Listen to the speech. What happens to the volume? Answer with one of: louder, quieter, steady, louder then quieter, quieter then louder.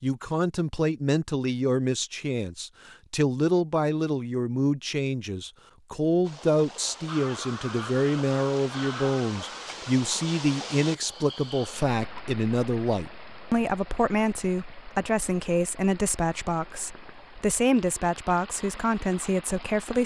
steady.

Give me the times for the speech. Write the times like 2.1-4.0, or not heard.
0.0-20.0.